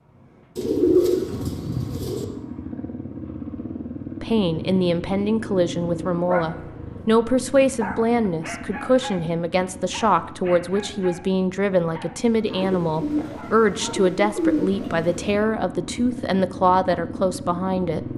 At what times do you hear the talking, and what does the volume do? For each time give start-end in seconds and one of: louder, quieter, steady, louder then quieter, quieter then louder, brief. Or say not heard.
4.2-18.1 steady.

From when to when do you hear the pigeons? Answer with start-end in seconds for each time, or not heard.
0.6-2.2, 12.6-15.3.